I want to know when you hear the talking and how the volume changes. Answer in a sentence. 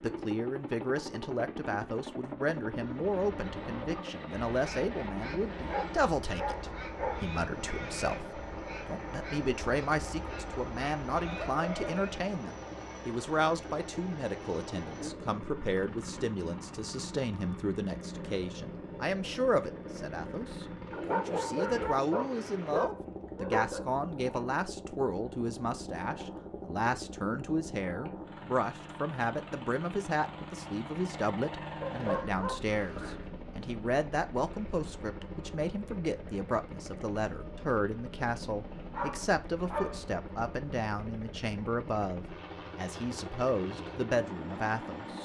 The talking can be heard from 0.0 to 45.1 s, at a steady volume.